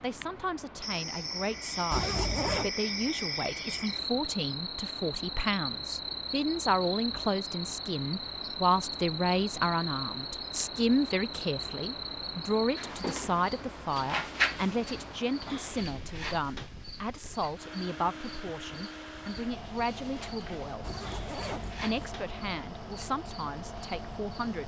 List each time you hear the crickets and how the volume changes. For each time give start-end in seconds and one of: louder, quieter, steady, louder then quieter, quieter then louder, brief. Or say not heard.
0.0-24.6 quieter.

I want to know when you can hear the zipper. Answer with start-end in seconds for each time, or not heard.
1.9-2.8, 20.8-22.1.